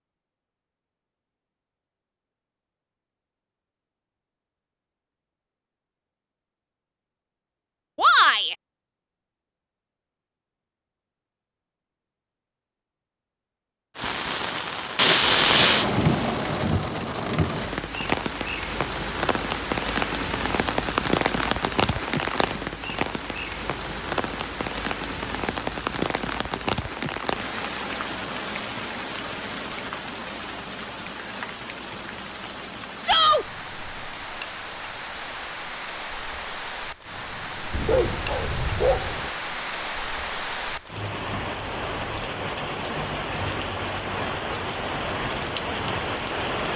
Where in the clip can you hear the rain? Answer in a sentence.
The rain can be heard from 13.9 to 46.7 s.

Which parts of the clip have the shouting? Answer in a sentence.
The shouting can be heard from 8.0 to 8.6 s and from 33.0 to 33.5 s.